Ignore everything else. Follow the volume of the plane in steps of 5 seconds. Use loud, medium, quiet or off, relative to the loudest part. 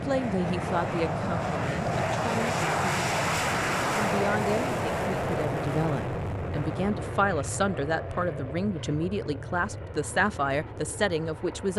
loud, medium, quiet.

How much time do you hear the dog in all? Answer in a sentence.
The dog can't be heard in this clip.